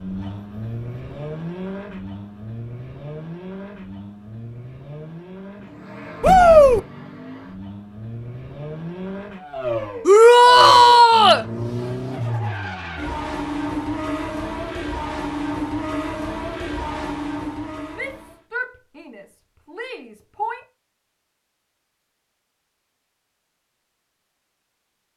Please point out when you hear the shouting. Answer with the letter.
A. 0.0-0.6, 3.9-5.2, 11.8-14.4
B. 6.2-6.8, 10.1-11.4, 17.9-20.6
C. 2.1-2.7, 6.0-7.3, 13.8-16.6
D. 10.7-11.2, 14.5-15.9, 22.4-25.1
B.